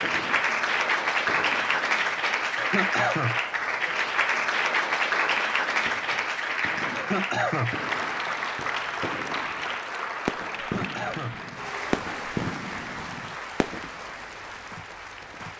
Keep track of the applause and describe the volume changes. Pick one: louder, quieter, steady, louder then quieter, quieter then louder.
quieter.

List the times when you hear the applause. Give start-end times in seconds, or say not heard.
0.0-15.5.